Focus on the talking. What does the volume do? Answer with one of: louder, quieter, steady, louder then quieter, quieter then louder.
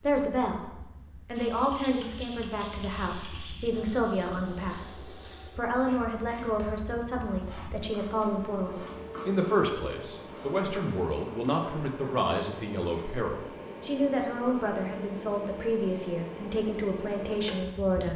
steady.